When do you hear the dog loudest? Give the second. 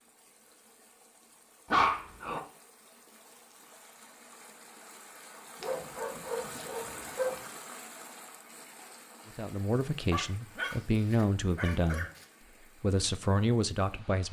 2 s.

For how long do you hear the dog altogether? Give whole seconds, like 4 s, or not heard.
5 s.